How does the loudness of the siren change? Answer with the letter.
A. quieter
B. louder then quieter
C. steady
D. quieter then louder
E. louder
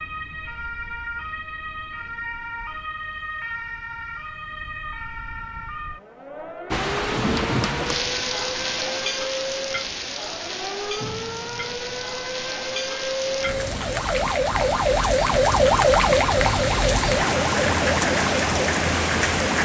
E.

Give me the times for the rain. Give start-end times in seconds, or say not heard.
6.7-19.6.